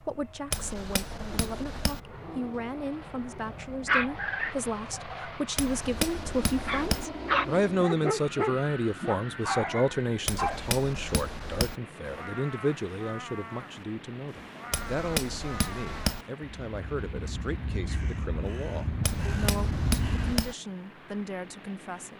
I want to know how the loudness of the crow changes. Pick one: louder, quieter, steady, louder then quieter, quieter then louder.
louder.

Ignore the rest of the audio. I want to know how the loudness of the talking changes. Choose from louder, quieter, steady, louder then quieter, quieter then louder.
louder then quieter.